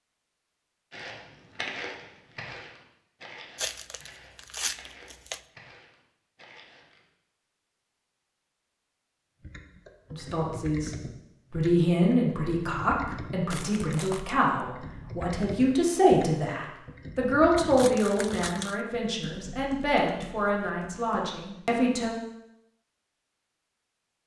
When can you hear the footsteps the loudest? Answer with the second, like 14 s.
2 s.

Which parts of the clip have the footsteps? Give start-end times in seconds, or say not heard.
0.9-7.0.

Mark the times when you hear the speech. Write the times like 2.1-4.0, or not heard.
10.1-22.1.